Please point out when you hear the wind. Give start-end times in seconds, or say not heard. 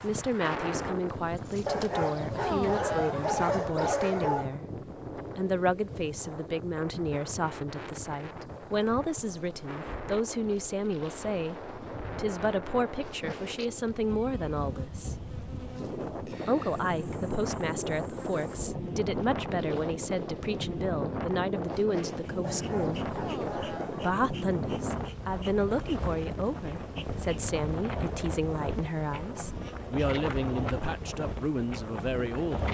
0.0-32.6.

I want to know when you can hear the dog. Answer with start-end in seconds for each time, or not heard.
1.6-4.5, 22.4-24.1.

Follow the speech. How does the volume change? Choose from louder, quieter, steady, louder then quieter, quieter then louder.
steady.